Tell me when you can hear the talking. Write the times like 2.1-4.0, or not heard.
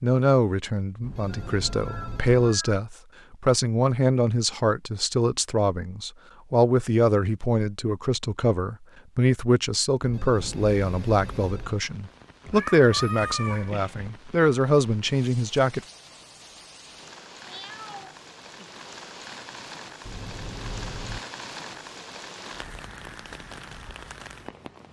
0.0-15.8.